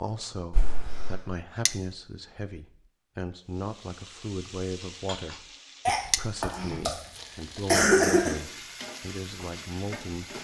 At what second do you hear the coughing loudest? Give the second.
8 s.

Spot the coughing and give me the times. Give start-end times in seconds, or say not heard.
0.5-1.2, 5.8-7.0, 7.7-8.3.